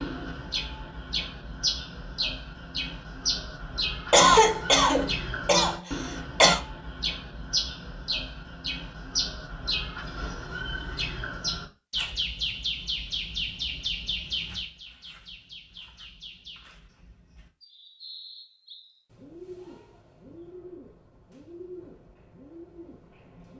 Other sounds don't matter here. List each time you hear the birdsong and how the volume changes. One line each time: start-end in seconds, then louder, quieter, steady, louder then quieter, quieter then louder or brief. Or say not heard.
0.0-23.5 quieter.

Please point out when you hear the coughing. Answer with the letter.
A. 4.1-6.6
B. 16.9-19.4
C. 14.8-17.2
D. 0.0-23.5
A.